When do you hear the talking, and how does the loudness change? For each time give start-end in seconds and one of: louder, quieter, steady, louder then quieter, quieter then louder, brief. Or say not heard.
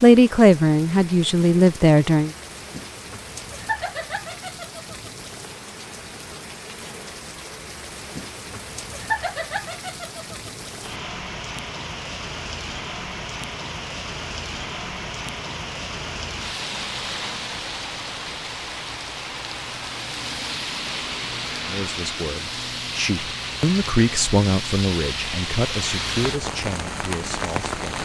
0.0-2.3 brief
21.6-28.0 louder then quieter.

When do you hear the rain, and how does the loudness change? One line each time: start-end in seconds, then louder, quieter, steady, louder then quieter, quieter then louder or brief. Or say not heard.
0.0-28.0 louder.